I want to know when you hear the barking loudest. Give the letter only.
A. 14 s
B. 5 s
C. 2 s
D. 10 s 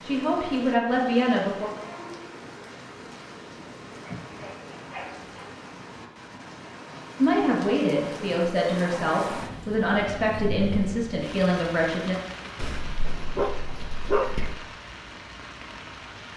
A.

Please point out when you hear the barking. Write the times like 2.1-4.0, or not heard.
4.2-5.6, 12.6-14.6.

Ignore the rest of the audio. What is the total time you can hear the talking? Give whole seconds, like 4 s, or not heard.
7 s.